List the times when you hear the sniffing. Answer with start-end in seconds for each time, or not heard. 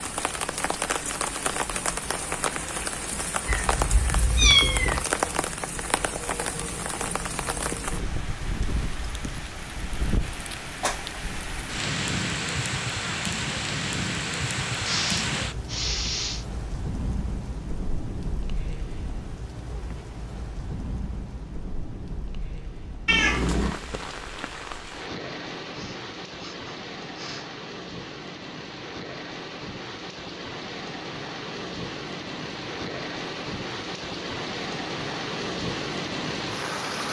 14.8-16.4, 25.7-27.5.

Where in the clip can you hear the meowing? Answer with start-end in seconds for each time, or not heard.
3.5-5.0, 23.1-23.7.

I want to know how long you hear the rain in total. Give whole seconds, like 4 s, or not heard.
37 s.